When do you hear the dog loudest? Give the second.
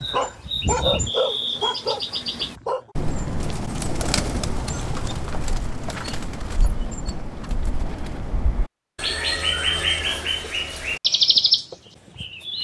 1 s.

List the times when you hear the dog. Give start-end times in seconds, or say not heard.
0.0-3.0.